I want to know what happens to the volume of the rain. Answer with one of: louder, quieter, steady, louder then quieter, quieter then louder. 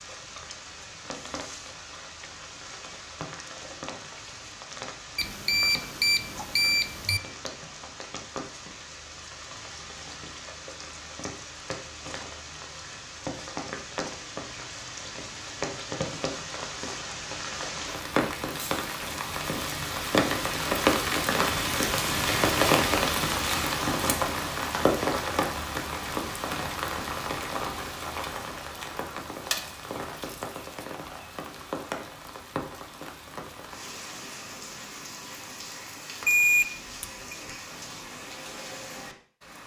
louder then quieter.